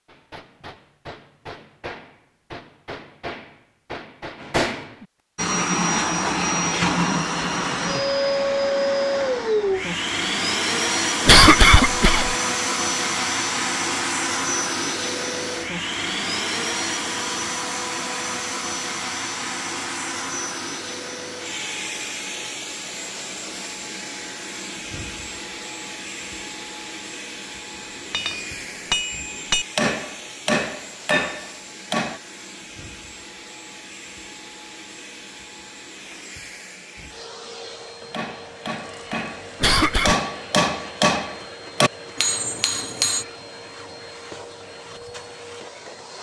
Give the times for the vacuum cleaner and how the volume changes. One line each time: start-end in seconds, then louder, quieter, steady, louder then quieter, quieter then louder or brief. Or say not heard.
5.3-46.1 quieter.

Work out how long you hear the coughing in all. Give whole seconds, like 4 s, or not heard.
2 s.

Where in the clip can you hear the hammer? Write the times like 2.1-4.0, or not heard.
0.1-5.0, 27.9-32.2, 38.1-43.2.